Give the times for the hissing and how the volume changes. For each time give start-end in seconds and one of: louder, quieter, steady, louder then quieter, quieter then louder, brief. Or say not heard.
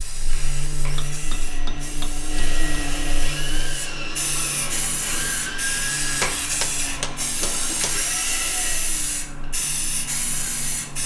0.0-11.0 louder.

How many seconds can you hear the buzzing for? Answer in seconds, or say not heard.
11 s.